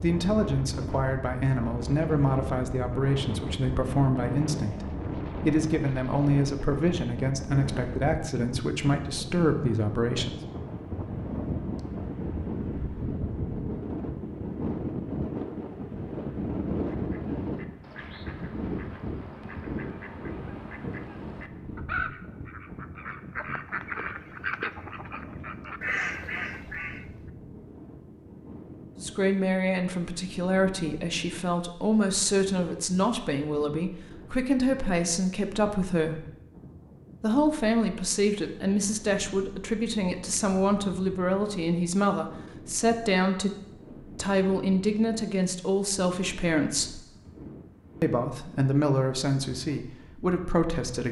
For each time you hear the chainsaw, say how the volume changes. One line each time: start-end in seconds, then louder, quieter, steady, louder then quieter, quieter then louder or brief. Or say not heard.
not heard.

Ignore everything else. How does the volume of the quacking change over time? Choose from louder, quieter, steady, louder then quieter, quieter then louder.
louder.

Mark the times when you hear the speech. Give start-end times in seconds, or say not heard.
0.0-10.4, 29.0-36.2, 37.2-47.0, 48.0-51.0.